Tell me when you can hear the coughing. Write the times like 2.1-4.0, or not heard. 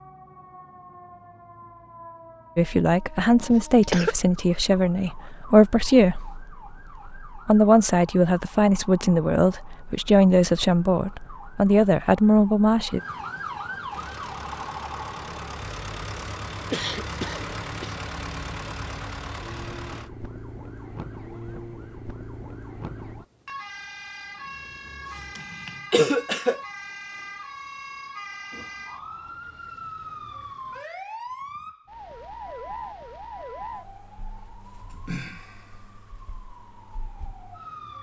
3.5-4.2, 16.7-18.1, 25.9-26.6.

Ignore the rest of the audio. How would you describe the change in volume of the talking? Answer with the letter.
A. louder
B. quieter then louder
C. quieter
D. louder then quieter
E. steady
E.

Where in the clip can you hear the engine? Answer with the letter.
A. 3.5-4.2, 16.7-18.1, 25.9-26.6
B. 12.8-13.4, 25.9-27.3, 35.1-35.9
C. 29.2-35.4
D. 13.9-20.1
D.